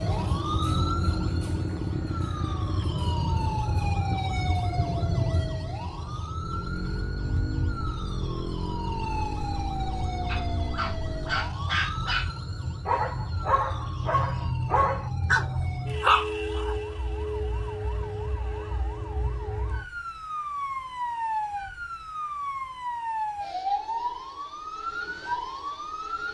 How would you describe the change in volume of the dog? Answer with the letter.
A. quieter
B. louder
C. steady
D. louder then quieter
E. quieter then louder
B.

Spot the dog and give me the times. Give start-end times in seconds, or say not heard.
10.2-16.8.